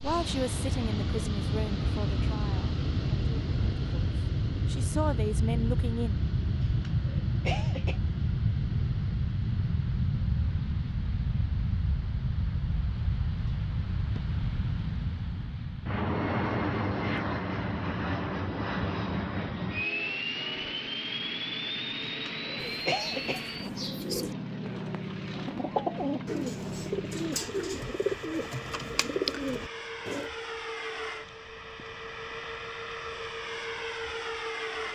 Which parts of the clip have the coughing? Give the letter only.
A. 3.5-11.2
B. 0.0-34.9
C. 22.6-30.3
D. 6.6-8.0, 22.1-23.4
D.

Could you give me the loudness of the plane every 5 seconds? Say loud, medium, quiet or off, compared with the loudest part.
loud, loud, loud, loud, loud, medium, medium.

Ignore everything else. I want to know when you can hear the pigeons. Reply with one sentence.
You can hear the pigeons from 22.6 to 30.3 s.